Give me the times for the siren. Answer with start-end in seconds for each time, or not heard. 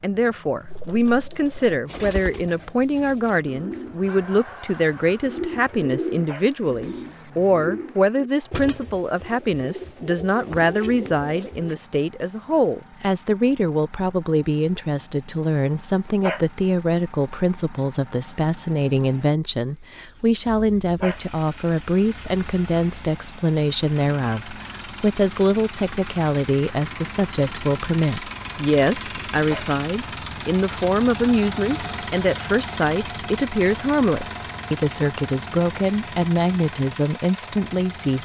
not heard.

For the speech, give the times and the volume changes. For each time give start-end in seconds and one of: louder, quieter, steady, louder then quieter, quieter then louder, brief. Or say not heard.
0.0-38.2 steady.